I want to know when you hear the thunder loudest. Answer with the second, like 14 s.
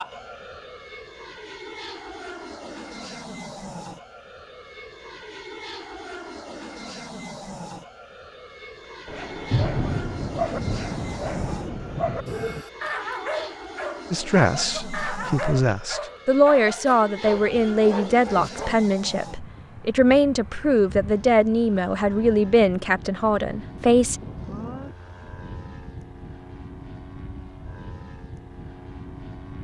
10 s.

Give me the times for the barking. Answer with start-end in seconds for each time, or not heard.
9.1-18.8.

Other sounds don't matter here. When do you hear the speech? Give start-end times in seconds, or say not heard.
14.1-24.2.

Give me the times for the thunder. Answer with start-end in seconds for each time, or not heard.
9.5-12.7, 23.6-24.9.